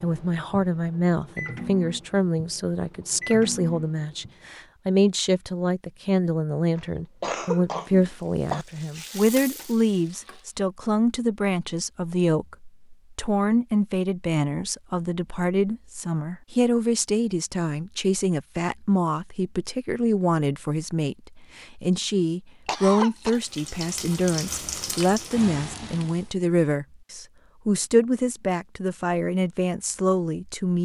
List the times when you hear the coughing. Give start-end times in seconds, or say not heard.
6.8-8.7, 22.6-23.4.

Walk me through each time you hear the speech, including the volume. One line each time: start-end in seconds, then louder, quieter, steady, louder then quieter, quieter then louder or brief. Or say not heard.
0.0-30.8 steady.